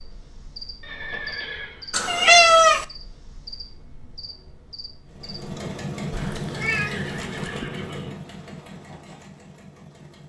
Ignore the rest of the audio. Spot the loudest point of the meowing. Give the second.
2 s.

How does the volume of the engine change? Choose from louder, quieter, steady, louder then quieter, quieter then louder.
quieter.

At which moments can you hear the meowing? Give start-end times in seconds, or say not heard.
1.9-2.9, 6.1-7.7.